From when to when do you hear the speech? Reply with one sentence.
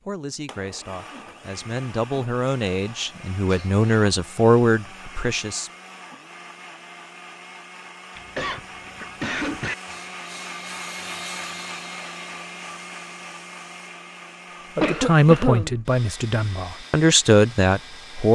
The speech can be heard from 0.1 to 5.7 s and from 14.8 to 18.2 s.